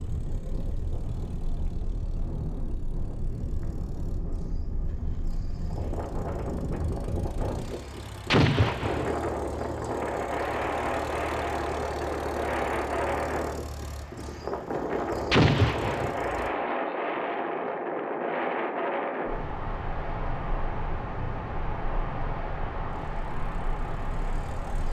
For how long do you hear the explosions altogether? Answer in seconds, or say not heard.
2 s.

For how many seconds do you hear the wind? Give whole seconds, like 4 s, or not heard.
25 s.